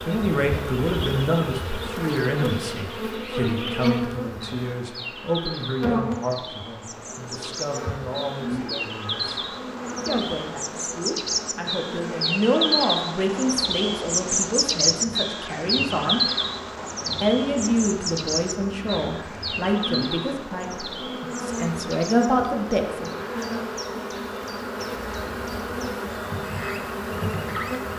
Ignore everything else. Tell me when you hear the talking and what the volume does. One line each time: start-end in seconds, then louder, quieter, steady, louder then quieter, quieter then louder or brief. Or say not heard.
0.1-16.2 quieter then louder
17.2-23.2 quieter then louder.